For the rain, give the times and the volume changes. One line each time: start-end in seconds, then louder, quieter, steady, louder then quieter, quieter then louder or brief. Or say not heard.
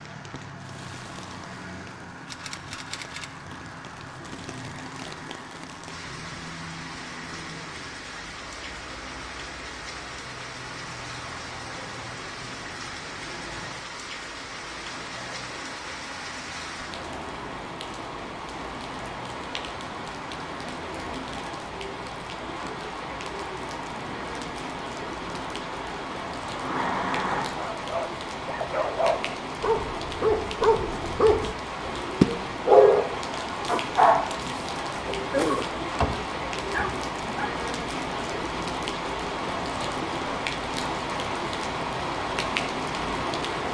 0.0-43.6 louder.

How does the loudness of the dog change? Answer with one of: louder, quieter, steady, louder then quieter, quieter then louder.
louder then quieter.